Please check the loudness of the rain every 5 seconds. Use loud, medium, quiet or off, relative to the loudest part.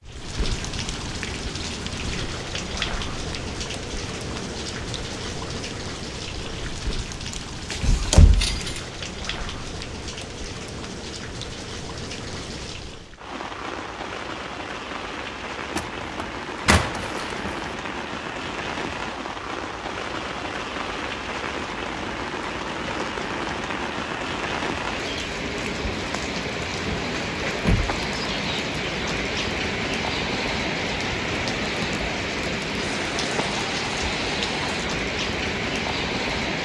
medium, medium, medium, medium, loud, loud, loud, loud.